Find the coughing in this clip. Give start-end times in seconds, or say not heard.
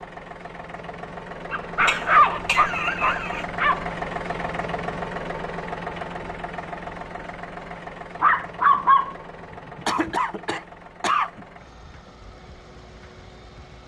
1.8-3.5, 9.8-11.4.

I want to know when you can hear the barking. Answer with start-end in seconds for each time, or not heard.
1.5-3.9, 8.2-9.2.